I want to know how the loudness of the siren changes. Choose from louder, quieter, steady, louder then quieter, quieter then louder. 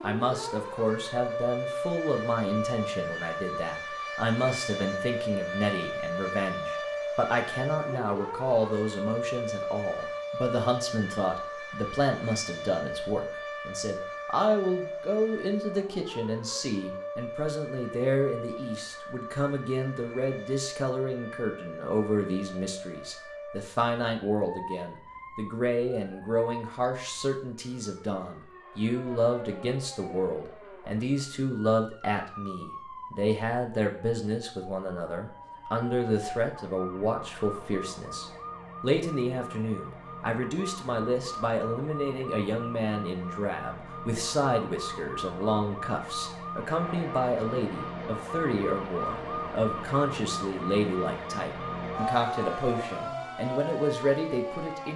quieter then louder.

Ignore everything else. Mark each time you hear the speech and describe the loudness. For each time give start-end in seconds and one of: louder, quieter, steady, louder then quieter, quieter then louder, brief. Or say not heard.
0.0-54.9 steady.